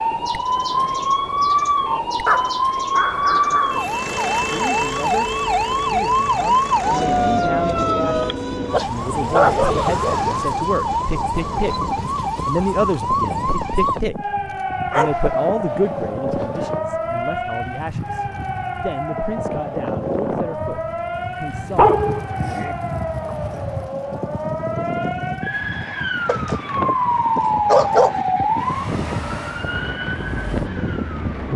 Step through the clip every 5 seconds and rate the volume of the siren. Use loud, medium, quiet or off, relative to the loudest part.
loud, loud, loud, medium, medium, loud, medium.